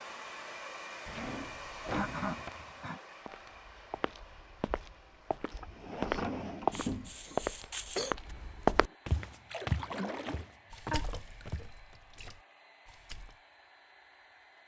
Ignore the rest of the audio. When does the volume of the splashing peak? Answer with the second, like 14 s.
10 s.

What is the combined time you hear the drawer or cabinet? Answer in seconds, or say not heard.
4 s.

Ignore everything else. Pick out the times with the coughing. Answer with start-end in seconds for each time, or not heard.
1.9-3.0, 6.7-8.2, 10.9-11.7.